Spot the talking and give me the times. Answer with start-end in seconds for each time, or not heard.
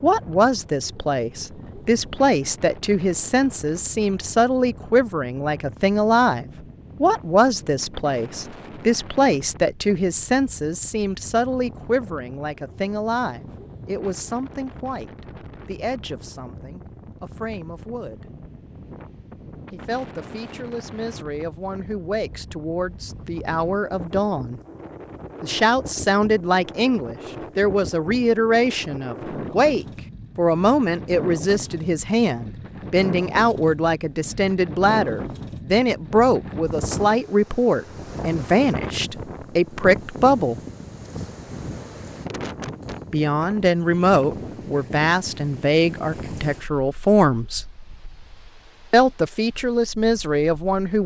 0.0-18.2, 19.7-24.6, 25.4-40.6, 43.1-47.6, 48.9-51.0.